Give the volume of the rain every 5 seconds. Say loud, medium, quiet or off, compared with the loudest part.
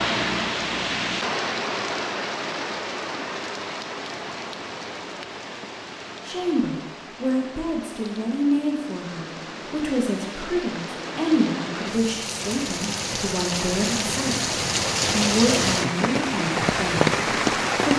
medium, quiet, medium, loud.